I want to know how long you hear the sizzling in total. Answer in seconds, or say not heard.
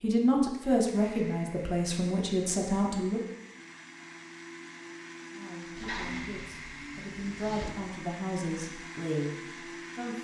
2 s.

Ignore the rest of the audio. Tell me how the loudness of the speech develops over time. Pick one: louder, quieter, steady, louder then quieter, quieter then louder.
quieter.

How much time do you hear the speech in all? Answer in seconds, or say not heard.
8 s.